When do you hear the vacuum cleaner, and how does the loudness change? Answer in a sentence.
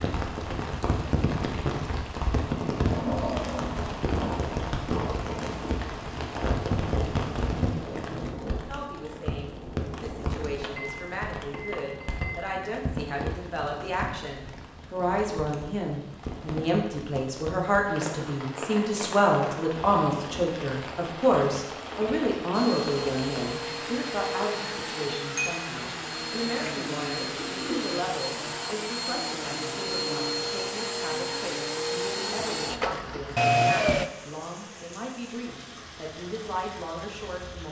The vacuum cleaner can be heard from 22.5 to 34.1 s, getting louder.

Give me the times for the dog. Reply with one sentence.
You can't hear the dog here.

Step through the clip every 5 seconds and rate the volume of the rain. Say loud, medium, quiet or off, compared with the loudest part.
loud, loud, medium, medium, medium, medium, quiet, quiet.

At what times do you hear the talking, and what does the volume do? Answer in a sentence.
The talking can be heard from 8.7 to 37.6 s, getting louder then quieter.